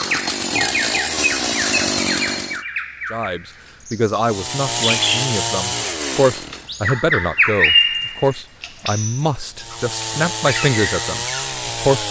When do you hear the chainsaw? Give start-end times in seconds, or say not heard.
0.0-2.6, 4.2-6.7, 9.6-12.0.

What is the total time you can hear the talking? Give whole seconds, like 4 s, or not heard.
9 s.